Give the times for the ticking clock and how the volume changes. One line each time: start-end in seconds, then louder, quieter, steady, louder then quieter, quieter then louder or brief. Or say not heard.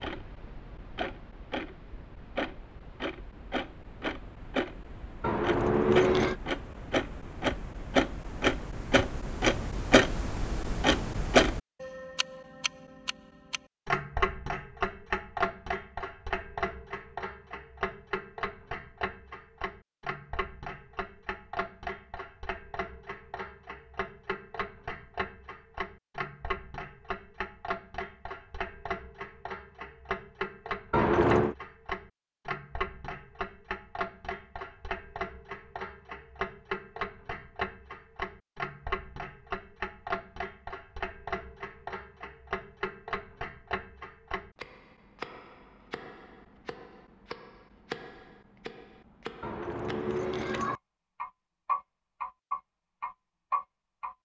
0.0-54.1 quieter.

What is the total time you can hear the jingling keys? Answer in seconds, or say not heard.
3 s.